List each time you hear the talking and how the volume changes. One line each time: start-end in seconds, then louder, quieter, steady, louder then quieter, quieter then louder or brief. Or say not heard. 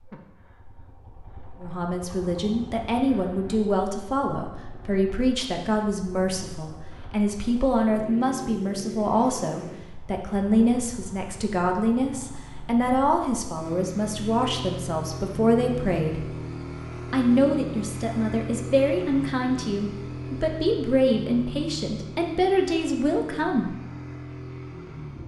1.6-16.4 steady
17.1-23.8 steady.